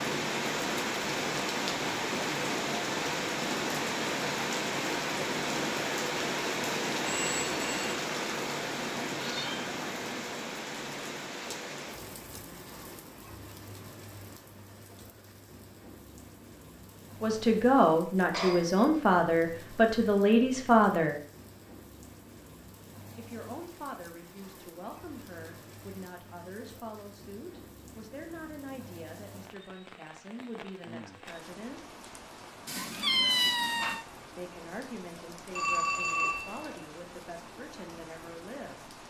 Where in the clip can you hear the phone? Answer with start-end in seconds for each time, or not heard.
7.0-8.0, 18.3-18.9, 35.5-36.8.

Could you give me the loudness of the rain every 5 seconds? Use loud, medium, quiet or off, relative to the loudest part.
loud, loud, medium, quiet, quiet, quiet, quiet, quiet.